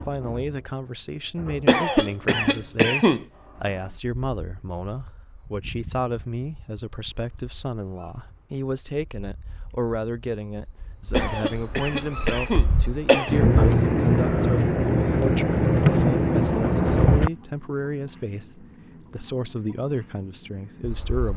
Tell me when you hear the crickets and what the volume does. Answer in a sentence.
You can hear the crickets from 0.0 to 21.3 s, getting louder then quieter.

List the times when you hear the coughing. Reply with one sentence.
You can hear the coughing from 1.6 to 3.2 s and from 11.1 to 13.4 s.